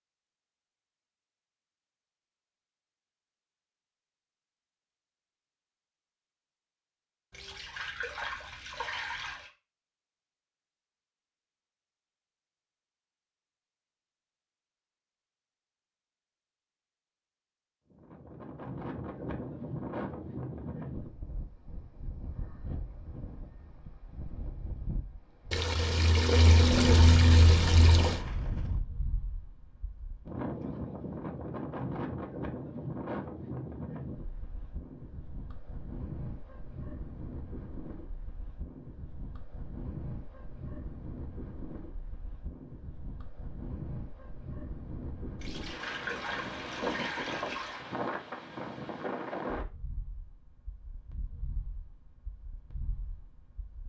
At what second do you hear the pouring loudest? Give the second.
27 s.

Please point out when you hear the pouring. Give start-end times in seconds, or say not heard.
7.3-9.5, 25.5-28.2, 45.4-47.8.